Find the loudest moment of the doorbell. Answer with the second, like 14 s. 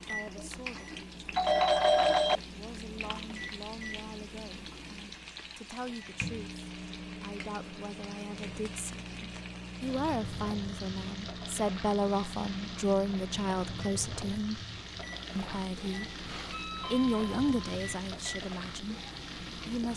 2 s.